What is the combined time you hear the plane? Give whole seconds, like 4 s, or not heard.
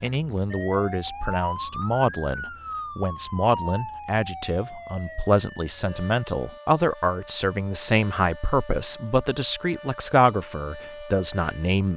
not heard.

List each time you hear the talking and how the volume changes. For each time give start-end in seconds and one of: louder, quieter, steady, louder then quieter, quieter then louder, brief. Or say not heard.
0.0-11.9 steady.